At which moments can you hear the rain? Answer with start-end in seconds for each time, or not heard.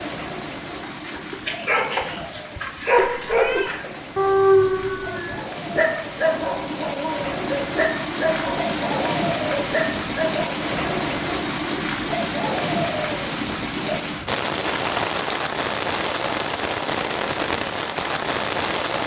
0.0-19.0.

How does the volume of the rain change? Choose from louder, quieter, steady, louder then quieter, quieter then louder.
louder.